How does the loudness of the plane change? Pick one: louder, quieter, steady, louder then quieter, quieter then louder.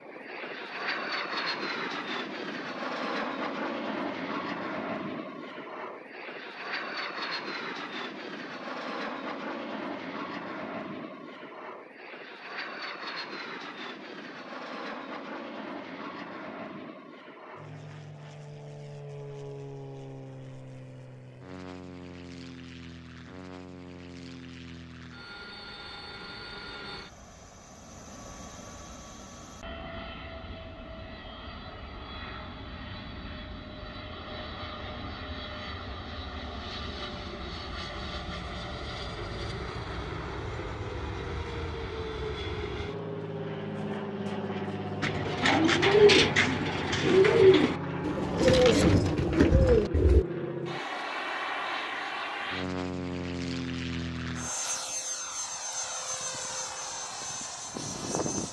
quieter then louder.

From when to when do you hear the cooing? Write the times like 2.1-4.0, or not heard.
45.0-50.2.